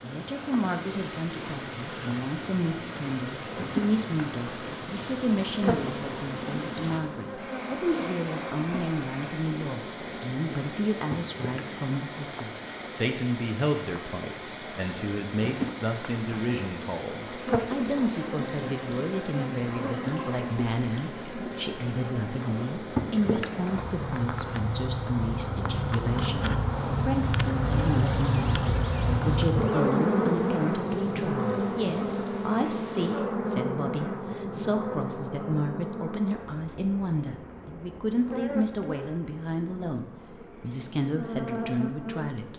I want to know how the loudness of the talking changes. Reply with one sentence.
The volume of the talking stays about the same.